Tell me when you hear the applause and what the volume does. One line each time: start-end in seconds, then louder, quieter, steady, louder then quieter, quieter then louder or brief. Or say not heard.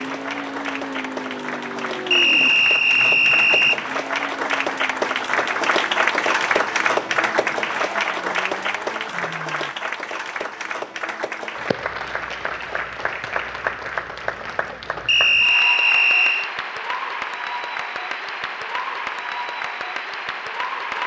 0.0-21.0 louder then quieter.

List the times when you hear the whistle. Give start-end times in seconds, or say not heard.
2.1-3.8, 15.1-16.5.